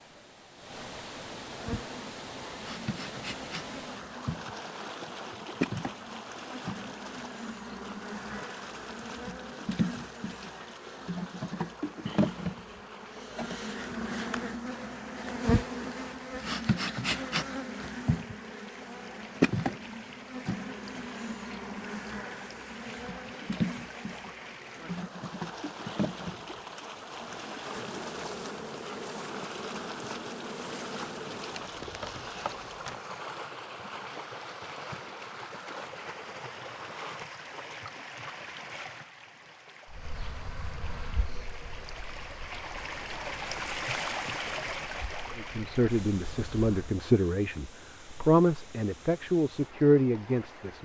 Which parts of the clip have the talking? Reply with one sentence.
You can hear the talking from 45.4 to 50.7 s.